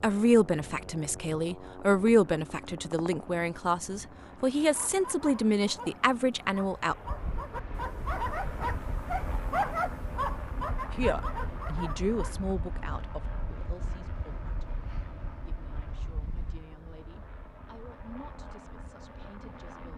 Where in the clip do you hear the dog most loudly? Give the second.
10 s.